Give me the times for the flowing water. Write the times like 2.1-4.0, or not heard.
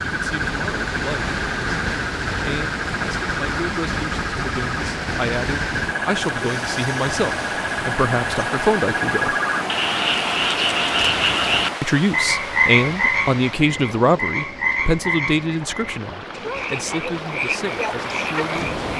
0.0-18.9.